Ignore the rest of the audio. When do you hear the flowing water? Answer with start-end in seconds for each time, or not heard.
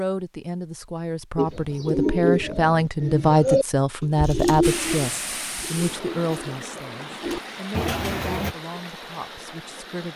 4.6-10.1.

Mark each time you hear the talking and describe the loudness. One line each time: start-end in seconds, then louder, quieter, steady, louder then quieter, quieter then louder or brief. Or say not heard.
0.0-10.1 louder then quieter.